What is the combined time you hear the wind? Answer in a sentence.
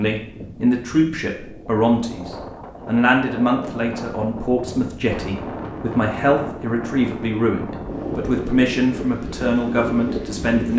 The wind can be heard for 11 seconds in total.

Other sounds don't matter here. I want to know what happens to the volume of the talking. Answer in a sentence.
The loudness of the talking stays about the same.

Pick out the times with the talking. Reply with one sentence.
You can hear the talking from 0.0 to 10.7 s.